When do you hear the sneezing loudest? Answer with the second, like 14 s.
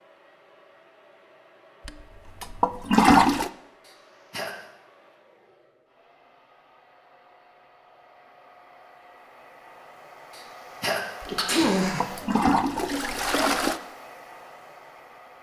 12 s.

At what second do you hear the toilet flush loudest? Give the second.
3 s.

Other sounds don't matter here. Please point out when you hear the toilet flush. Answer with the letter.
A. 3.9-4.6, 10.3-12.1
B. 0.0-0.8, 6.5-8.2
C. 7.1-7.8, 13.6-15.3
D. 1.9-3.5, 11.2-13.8
D.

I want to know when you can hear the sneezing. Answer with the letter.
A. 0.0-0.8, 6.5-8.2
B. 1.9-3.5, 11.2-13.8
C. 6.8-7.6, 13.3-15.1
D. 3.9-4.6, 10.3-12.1
D.